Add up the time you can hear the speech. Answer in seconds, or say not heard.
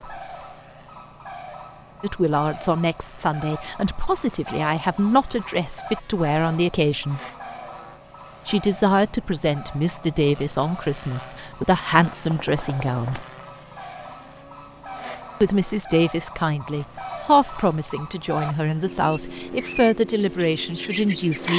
16 s.